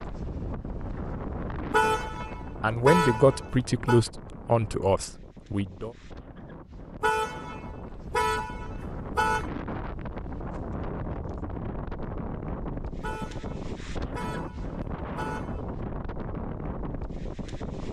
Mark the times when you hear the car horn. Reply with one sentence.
You can hear the car horn from 1.7 to 4.0 s, from 7.0 to 9.5 s and from 13.0 to 15.7 s.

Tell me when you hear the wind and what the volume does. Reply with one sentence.
You can hear the wind from 0.0 to 17.8 s, getting quieter then louder.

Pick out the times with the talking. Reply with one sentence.
The talking can be heard from 2.6 to 5.9 s.